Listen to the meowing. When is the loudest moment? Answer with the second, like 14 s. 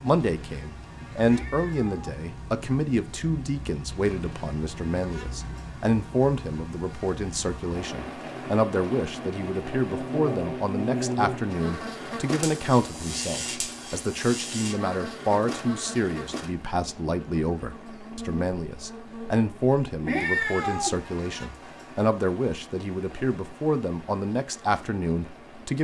20 s.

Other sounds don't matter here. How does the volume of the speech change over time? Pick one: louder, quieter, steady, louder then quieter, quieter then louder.
steady.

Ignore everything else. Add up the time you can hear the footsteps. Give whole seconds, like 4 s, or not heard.
not heard.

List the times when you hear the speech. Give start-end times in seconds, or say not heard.
0.0-25.7.